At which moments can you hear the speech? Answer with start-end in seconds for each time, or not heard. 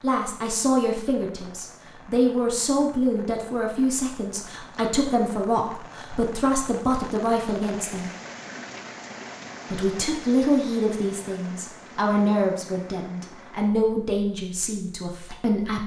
0.0-8.1, 9.7-15.8.